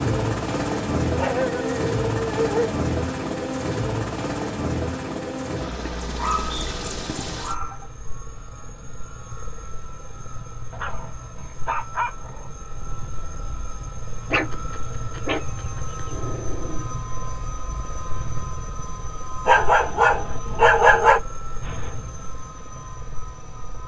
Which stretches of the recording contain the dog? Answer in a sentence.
You can hear the dog from 1.1 to 2.8 s, from 6.0 to 7.8 s, from 10.7 to 12.5 s, from 14.3 to 16.9 s and from 19.4 to 21.2 s.